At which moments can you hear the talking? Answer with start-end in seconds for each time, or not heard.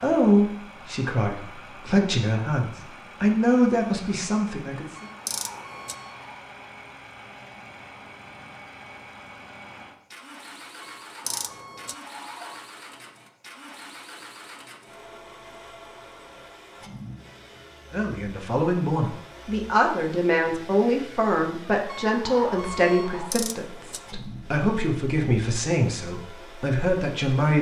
0.0-5.0, 17.9-27.5.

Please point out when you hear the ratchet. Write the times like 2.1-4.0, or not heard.
5.2-6.0, 11.2-11.9, 23.3-24.0.